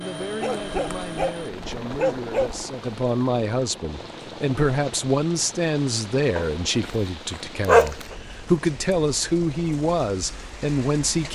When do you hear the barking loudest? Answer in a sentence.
The loudest moment of the barking is at 8 seconds.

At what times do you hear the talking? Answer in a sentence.
The talking can be heard from 0.0 to 11.2 s.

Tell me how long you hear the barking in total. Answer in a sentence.
The barking can be heard for 3 seconds in total.